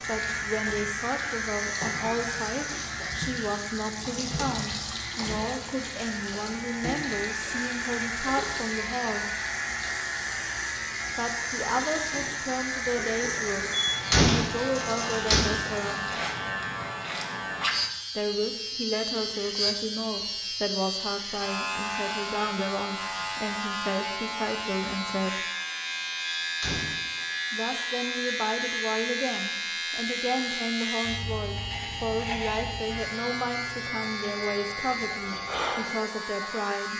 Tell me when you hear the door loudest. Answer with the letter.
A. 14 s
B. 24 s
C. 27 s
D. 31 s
A.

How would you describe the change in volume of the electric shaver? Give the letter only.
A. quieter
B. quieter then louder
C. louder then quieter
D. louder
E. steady
E.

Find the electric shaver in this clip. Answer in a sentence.
You can hear the electric shaver from 0.0 to 36.9 s.